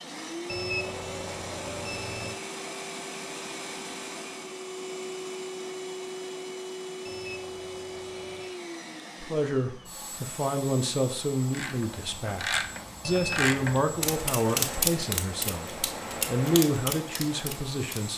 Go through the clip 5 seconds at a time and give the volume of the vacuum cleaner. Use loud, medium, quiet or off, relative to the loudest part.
loud, loud, medium, medium.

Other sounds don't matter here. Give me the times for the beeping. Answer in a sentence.
The beeping can be heard from 0.5 to 2.4 s, from 7.0 to 8.6 s and from 13.0 to 14.2 s.